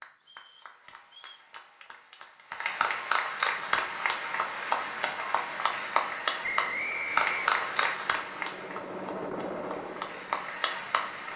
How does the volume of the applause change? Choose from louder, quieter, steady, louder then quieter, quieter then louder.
louder then quieter.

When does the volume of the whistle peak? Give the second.
7 s.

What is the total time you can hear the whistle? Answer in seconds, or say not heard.
3 s.